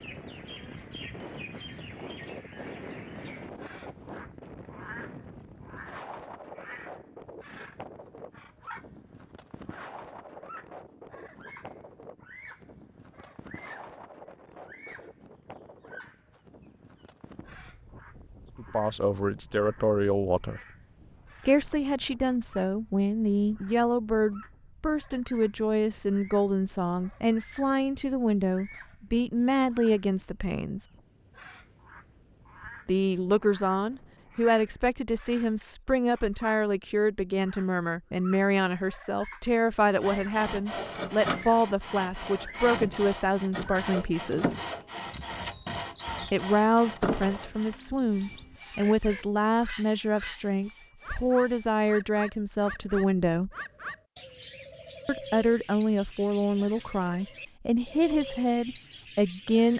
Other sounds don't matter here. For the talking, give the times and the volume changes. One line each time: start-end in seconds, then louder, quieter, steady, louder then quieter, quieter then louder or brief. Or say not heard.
18.6-20.6 brief
21.4-30.9 steady
32.9-44.5 steady
46.2-53.5 steady
55.0-59.7 steady.